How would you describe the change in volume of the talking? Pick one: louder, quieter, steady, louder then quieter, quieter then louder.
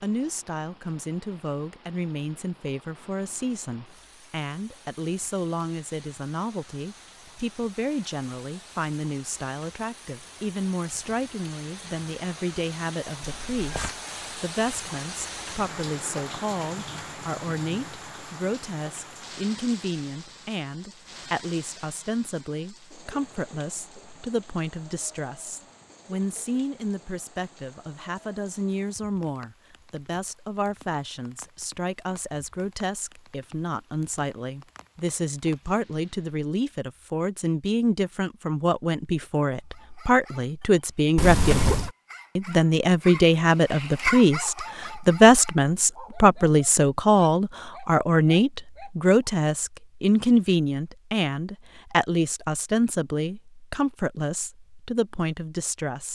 louder.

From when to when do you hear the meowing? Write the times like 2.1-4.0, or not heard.
13.3-13.9, 41.1-41.9.